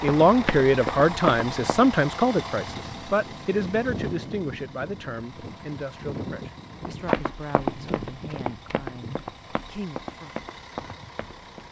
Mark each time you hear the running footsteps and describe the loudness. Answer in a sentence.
You can hear the running footsteps briefly from 0.0 to 1.9 s; and from 6.8 to 11.6 s, getting quieter.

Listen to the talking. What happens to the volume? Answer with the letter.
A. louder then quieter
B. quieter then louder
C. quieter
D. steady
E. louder
C.